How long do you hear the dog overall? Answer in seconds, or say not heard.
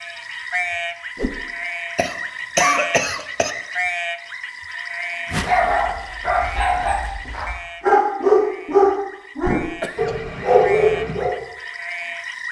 6 s.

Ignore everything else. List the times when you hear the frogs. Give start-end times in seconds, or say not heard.
0.0-12.4.